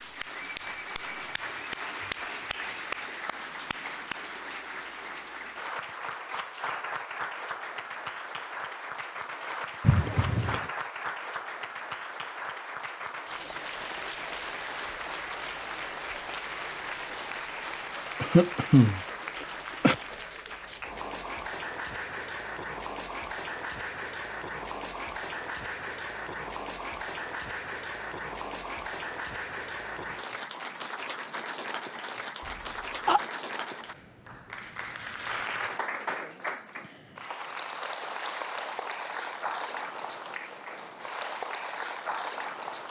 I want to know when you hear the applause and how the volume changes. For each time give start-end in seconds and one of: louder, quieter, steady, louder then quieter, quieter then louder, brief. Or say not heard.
0.0-42.8 steady.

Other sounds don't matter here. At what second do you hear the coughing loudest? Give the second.
19 s.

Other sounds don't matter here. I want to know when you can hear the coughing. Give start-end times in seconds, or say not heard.
9.8-10.7, 18.2-19.9, 32.5-33.2.